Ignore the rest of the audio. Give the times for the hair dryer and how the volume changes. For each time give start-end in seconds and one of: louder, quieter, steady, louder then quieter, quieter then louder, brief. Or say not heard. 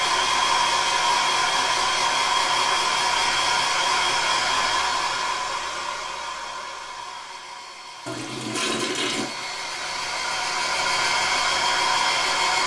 0.0-12.6 quieter then louder.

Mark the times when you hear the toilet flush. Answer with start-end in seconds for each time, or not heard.
8.1-9.4.